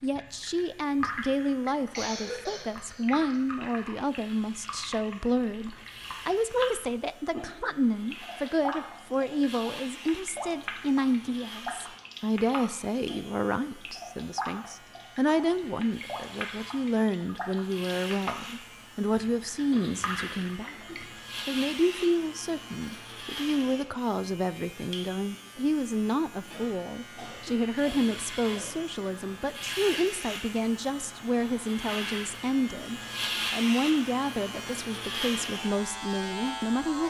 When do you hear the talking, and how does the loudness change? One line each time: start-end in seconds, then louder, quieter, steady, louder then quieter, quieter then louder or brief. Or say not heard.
0.0-20.8 steady
21.4-37.0 steady.